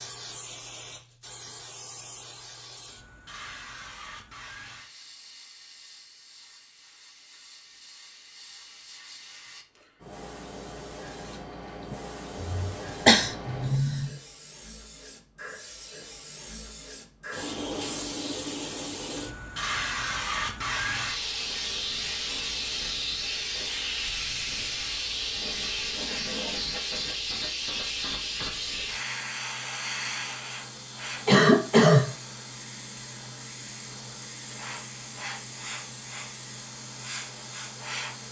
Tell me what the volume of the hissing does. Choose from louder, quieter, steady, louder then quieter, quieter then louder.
louder then quieter.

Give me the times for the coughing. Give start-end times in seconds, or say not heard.
12.4-14.1, 31.2-32.1.